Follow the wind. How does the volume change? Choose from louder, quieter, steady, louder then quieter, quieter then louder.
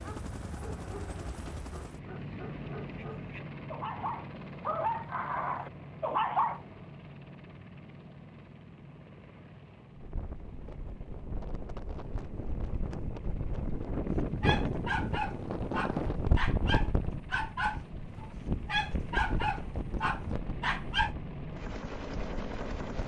louder then quieter.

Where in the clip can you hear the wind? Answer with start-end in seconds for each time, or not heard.
9.9-23.0.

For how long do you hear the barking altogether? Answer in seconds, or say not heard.
13 s.